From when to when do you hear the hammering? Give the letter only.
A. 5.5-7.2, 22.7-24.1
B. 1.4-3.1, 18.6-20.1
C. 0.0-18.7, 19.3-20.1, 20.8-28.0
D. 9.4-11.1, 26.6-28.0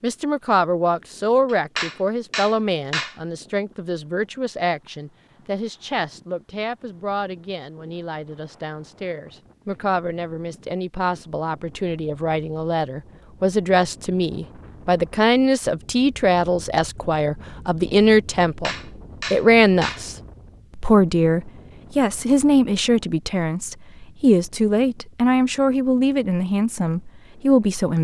B.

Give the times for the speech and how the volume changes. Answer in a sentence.
You can hear the speech from 0.0 to 18.7 s, getting quieter then louder; briefly from 19.3 to 20.1 s; and from 20.8 to 28.0 s, at a steady volume.